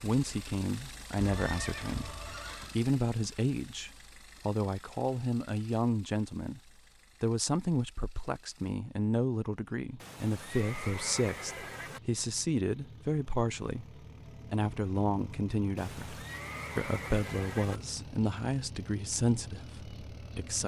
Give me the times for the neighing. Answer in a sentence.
The neighing can be heard from 1.2 to 2.8 s, from 10.0 to 12.0 s and from 15.8 to 17.8 s.